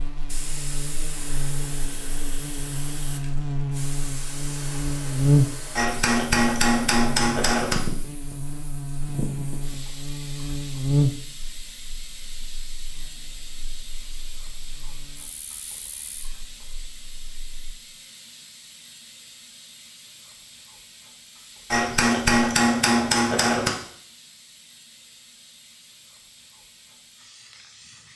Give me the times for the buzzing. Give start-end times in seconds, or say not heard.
0.0-17.8.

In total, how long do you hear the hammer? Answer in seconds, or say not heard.
4 s.